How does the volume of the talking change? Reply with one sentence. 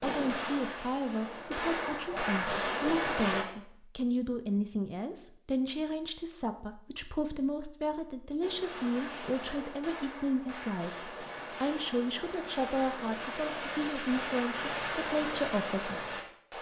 The loudness of the talking stays about the same.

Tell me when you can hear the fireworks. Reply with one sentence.
The fireworks can be heard from 0.0 to 3.5 s and from 8.4 to 16.5 s.